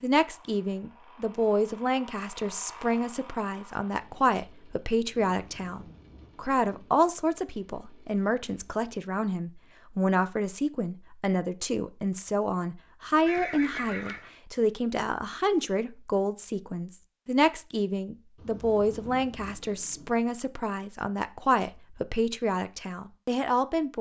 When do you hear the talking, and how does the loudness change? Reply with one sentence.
You can hear the talking from 0.0 to 23.9 s, at a steady volume.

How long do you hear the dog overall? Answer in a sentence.
The dog can't be heard in this clip.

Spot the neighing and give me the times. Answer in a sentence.
The neighing can be heard from 13.2 to 14.3 s.